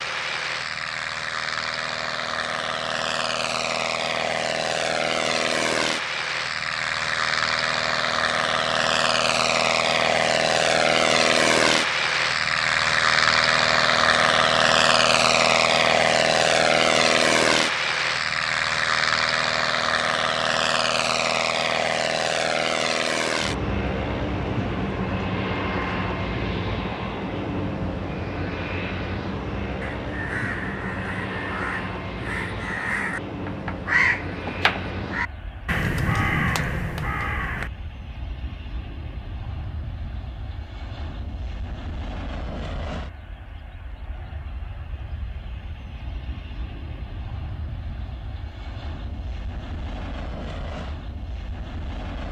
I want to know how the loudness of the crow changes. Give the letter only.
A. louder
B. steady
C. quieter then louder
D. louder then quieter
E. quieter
A.